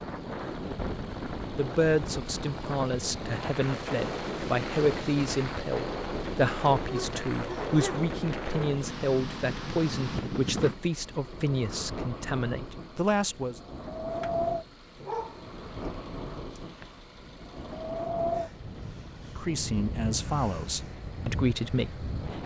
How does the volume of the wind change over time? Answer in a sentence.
The volume of the wind stays about the same.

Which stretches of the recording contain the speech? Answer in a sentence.
The speech can be heard from 1.6 to 13.6 s and from 19.4 to 22.4 s.